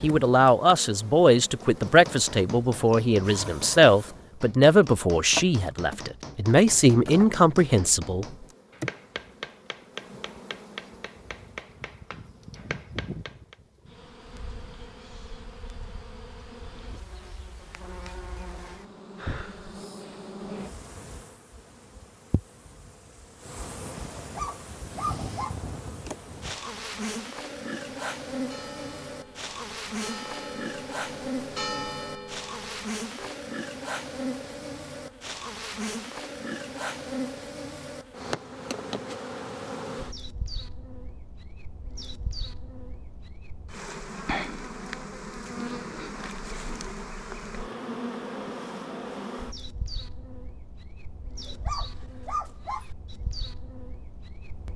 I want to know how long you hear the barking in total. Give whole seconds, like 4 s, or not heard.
3 s.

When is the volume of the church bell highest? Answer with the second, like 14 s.
32 s.